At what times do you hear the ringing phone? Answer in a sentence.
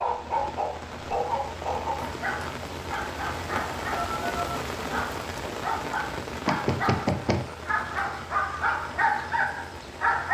The ringing phone can be heard from 4.0 to 4.6 s.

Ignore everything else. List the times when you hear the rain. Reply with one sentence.
The rain can be heard from 0.0 to 10.3 s.